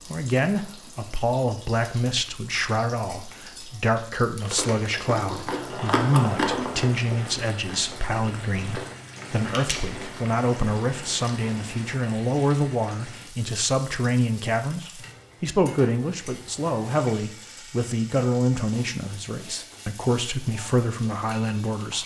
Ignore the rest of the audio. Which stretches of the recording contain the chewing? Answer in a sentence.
The chewing can be heard from 4.4 to 12.1 s.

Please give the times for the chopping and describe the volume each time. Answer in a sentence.
The chopping can't be heard in this clip.